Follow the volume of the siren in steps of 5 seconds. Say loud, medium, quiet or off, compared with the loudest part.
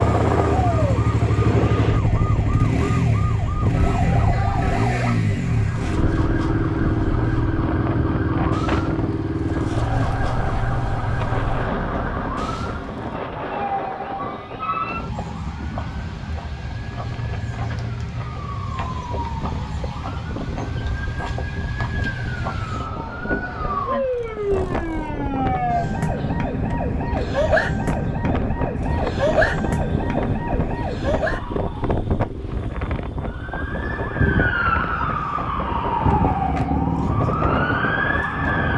medium, medium, medium, medium, loud, loud, loud, loud.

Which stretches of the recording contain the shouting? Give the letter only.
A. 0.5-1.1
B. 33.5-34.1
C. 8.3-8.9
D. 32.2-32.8
A.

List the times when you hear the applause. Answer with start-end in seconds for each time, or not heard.
not heard.